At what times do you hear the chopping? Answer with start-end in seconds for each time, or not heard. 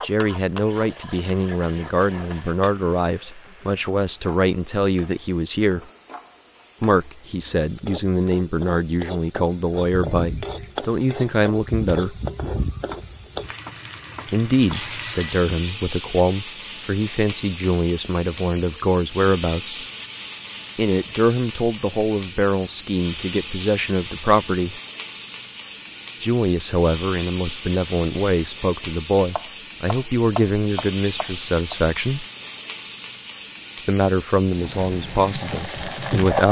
12.9-14.8, 29.3-31.8.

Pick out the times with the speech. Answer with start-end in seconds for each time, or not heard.
0.0-5.8, 6.8-12.2, 14.3-19.9, 20.8-24.8, 26.2-32.2, 33.9-36.4.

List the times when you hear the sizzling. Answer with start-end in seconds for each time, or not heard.
0.0-36.4.